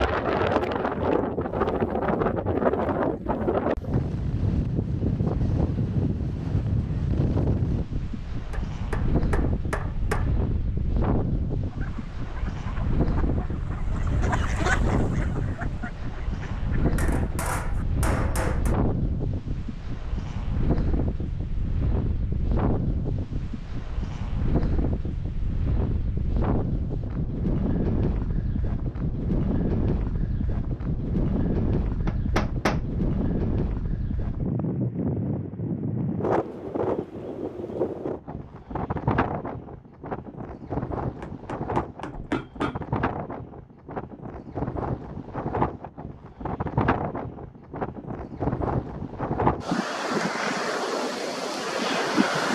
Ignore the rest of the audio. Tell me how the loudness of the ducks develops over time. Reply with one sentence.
The volume of the ducks goes up, then down.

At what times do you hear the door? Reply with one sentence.
You can't hear the door here.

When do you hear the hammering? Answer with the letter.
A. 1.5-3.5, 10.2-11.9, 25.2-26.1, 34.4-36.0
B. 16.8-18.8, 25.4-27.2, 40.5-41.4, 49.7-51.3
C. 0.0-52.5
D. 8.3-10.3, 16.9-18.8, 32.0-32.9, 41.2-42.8
D.